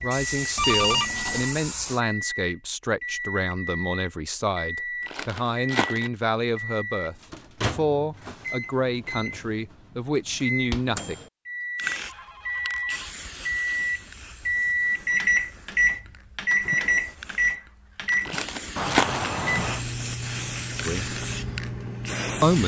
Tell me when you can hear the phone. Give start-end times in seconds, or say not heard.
0.6-1.5, 12.0-13.1, 18.8-19.9.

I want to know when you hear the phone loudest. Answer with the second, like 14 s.
1 s.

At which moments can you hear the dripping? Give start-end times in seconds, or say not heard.
not heard.